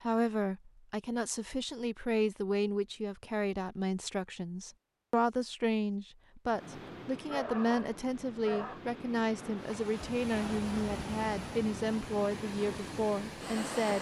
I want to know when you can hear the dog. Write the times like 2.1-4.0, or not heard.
7.2-8.8.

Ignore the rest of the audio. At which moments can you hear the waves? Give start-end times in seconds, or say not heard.
6.5-13.9.